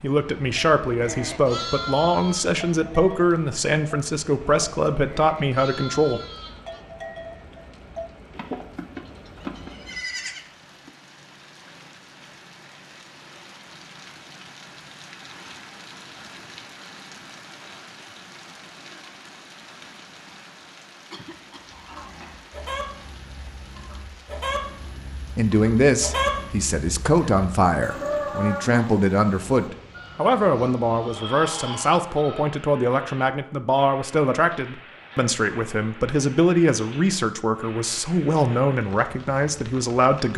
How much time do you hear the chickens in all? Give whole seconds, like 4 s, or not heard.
11 s.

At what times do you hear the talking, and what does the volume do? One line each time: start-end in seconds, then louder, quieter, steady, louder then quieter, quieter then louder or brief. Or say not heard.
0.0-6.2 steady
25.4-40.3 steady.